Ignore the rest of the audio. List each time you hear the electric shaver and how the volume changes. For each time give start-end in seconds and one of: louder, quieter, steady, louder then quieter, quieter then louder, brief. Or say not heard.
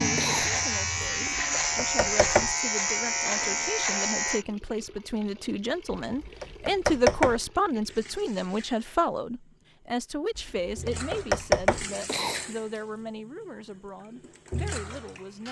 0.0-4.5 steady.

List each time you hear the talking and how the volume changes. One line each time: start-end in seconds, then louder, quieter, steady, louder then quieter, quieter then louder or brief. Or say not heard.
0.0-15.4 louder then quieter.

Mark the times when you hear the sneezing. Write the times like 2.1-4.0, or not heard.
0.1-1.3, 12.1-12.5.